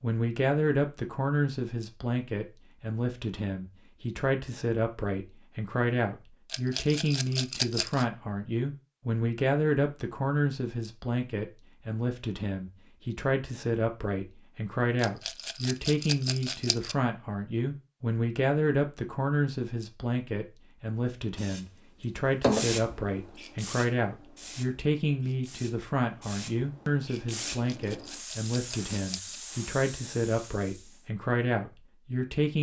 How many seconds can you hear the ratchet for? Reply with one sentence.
You can't hear the ratchet here.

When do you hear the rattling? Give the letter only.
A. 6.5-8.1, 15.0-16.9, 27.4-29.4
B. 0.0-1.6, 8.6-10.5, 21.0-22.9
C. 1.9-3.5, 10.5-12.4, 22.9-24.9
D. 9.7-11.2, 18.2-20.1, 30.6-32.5
A.